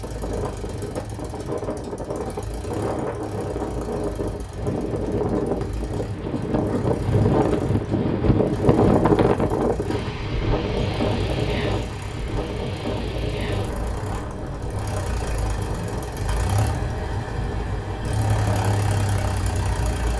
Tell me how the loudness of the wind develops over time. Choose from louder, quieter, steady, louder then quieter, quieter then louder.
louder then quieter.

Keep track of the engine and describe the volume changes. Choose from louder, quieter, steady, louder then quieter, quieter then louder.
louder.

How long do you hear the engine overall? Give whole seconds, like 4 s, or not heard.
20 s.